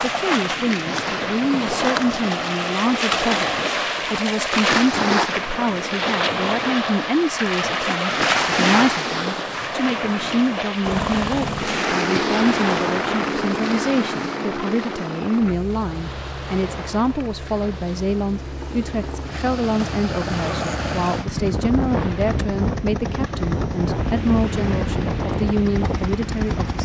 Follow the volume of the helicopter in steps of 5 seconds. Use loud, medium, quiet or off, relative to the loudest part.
off, off, loud, medium, loud, loud.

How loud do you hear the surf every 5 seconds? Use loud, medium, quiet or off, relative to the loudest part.
loud, loud, medium, quiet, quiet, quiet.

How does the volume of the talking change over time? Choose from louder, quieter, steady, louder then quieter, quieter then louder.
steady.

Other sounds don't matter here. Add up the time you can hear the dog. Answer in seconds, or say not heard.
not heard.